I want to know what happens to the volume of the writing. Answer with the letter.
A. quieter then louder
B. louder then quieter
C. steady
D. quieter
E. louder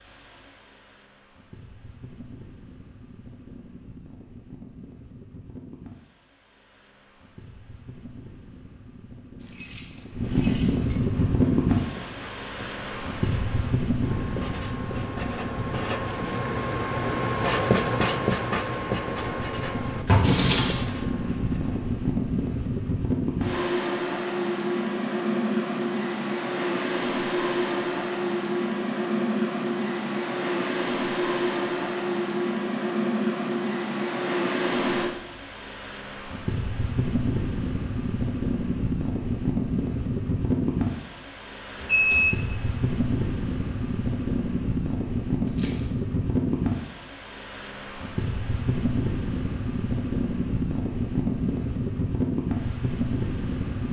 B.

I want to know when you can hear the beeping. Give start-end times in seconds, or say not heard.
41.8-42.5.